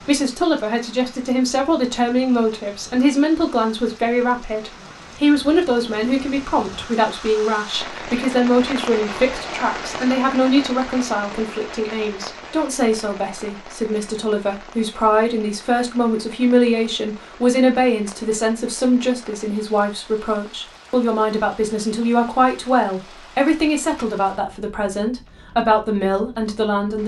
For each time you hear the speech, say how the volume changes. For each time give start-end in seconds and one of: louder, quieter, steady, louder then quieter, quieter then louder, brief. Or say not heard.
0.0-27.0 steady.